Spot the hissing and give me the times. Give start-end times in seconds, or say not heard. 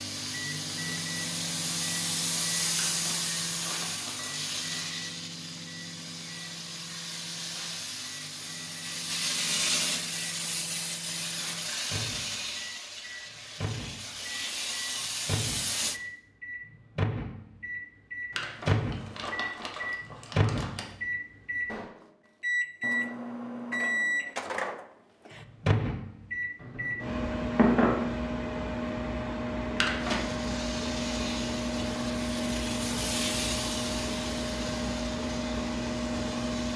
0.0-16.0, 29.9-36.7.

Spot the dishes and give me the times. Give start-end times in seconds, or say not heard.
26.6-28.1.